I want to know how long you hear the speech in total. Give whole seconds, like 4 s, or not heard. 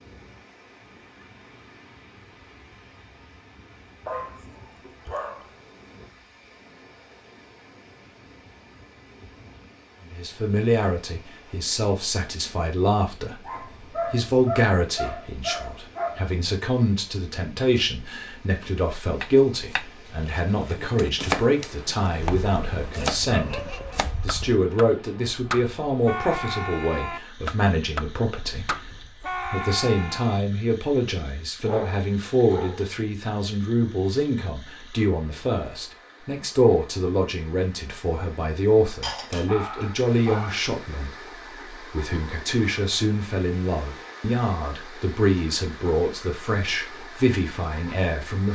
38 s.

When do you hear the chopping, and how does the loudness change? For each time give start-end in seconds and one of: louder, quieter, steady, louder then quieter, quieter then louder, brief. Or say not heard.
19.2-30.4 steady.